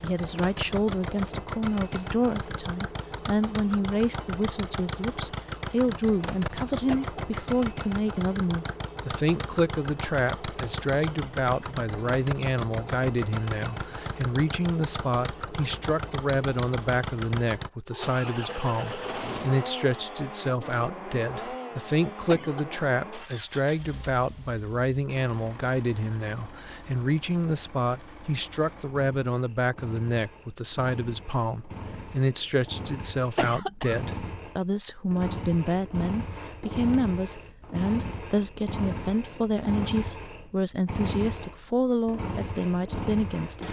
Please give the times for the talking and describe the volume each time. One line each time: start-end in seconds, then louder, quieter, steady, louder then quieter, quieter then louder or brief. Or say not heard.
0.0-43.6 steady.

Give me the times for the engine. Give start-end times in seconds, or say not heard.
0.0-43.6.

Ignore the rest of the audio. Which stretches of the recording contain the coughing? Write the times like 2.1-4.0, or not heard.
6.8-7.4, 22.2-22.8, 33.4-34.0.